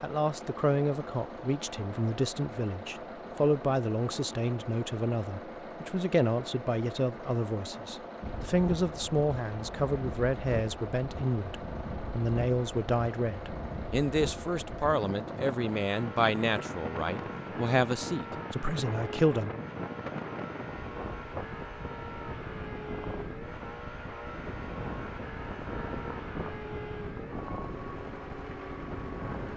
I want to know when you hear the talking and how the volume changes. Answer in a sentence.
The talking can be heard from 0.0 to 19.6 s, at a steady volume.